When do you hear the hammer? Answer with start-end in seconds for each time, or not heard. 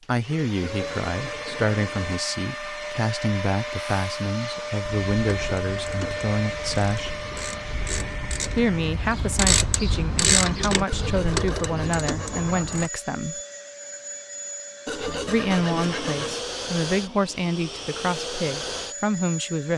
not heard.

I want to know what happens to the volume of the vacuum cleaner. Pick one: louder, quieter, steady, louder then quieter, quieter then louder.
quieter then louder.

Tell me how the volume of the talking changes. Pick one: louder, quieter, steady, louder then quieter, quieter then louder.
steady.